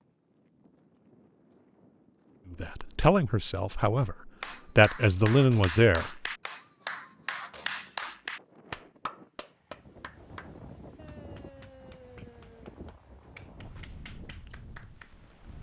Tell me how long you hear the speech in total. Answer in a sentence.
You can hear the speech for 4 seconds altogether.